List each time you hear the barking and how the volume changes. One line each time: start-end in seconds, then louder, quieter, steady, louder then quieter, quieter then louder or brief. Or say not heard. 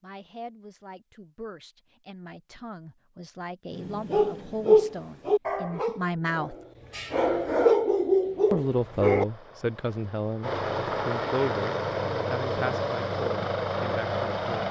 3.8-9.2 quieter then louder.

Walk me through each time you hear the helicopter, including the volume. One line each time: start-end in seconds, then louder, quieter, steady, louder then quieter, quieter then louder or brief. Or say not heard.
8.6-14.6 louder.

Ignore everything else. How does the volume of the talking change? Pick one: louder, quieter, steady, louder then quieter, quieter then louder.
louder then quieter.